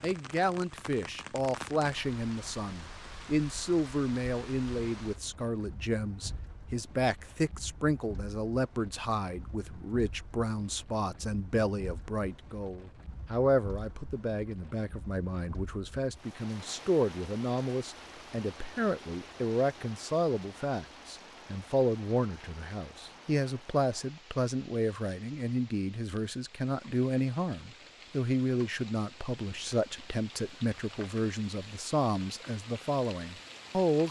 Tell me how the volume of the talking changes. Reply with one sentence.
The loudness of the talking stays about the same.